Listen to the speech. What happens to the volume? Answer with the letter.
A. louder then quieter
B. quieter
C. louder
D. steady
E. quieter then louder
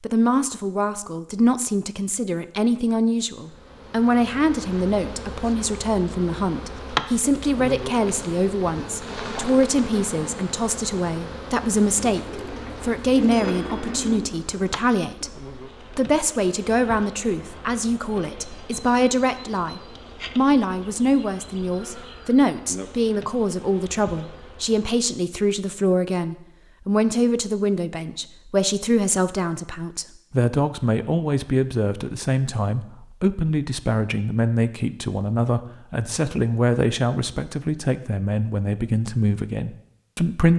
D.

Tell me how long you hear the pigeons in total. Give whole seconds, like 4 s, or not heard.
2 s.